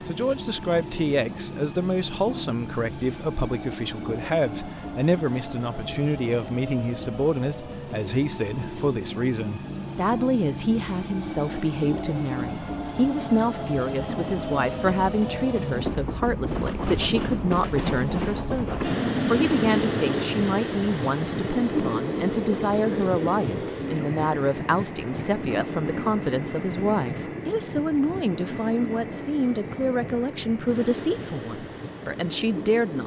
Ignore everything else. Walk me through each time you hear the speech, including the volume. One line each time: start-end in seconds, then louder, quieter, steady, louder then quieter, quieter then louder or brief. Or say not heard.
0.1-33.0 steady.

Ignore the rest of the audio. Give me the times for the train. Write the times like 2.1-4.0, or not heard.
0.0-33.0.